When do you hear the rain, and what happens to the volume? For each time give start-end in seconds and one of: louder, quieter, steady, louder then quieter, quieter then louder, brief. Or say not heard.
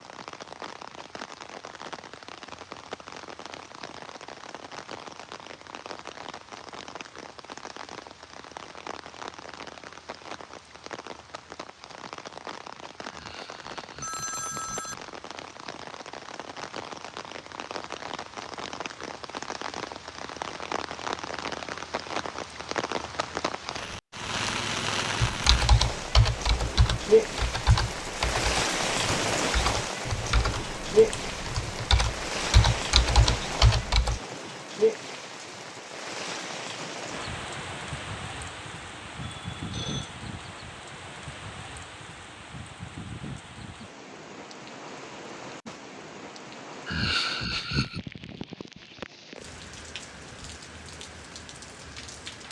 0.0-52.4 louder then quieter.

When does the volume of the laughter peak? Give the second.
47 s.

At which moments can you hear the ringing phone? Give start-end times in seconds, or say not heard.
14.0-15.1, 39.2-40.1.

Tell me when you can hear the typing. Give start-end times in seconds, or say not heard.
25.2-34.2.